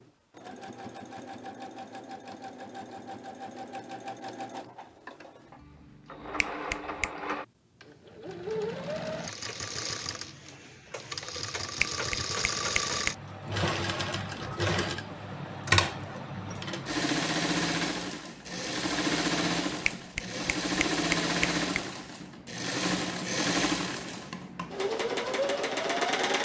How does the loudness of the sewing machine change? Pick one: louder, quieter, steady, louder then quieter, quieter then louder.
louder.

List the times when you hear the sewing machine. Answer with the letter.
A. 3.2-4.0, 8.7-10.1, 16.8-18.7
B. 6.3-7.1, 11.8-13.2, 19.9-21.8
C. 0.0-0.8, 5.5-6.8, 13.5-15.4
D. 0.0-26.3
D.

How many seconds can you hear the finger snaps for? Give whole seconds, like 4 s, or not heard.
4 s.